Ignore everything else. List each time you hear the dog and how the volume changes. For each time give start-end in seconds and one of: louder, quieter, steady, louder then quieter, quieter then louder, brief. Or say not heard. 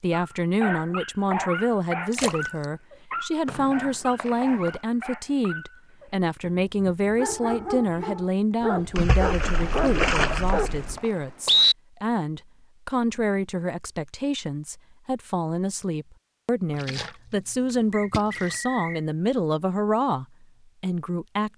0.1-11.0 quieter then louder.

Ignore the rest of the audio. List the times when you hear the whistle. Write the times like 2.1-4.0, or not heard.
3.5-4.8, 9.8-11.8, 17.9-19.0.